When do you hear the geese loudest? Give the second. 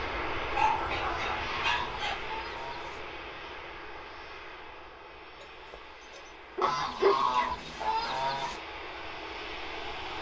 7 s.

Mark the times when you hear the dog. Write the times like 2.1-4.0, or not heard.
0.5-2.2, 5.4-7.5.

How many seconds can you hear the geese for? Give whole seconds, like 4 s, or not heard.
4 s.